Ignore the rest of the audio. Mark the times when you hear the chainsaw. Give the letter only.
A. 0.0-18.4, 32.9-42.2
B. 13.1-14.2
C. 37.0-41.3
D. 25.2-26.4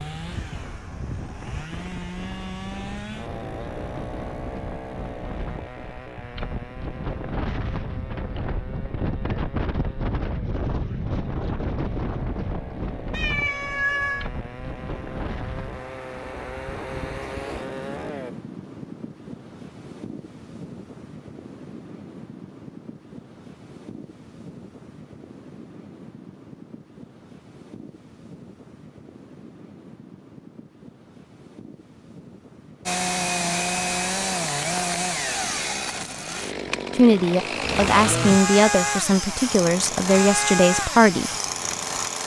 A.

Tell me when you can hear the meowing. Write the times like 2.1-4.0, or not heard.
13.1-14.2.